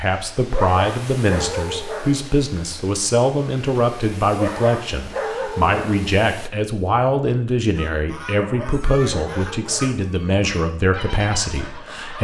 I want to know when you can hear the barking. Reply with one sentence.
The barking can be heard from 0.5 to 2.3 s, from 4.3 to 6.2 s and from 8.3 to 10.1 s.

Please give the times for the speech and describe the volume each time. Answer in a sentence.
The speech can be heard from 0.0 to 12.2 s, at a steady volume.